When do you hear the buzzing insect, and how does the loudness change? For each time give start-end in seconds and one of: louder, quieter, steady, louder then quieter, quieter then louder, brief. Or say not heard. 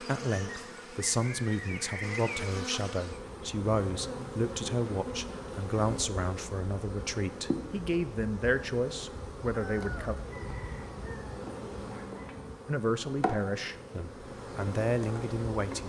0.0-15.8 steady.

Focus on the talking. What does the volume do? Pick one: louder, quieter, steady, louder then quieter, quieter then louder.
steady.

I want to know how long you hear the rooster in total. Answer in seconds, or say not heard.
3 s.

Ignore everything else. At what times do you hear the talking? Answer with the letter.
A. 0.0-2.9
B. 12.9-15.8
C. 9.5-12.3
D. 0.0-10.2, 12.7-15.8
D.